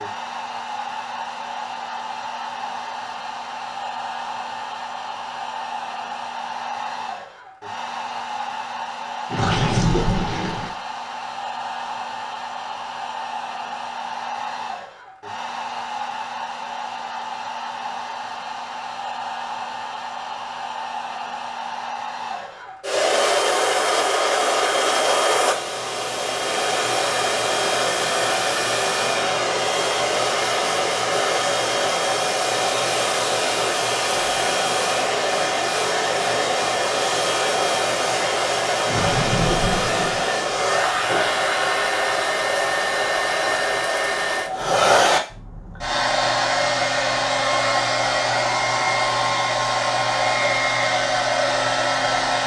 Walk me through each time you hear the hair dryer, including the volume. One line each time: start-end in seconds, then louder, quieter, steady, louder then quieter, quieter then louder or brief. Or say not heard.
0.0-52.4 louder.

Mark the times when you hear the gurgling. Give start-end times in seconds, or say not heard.
9.3-10.7, 38.9-40.2.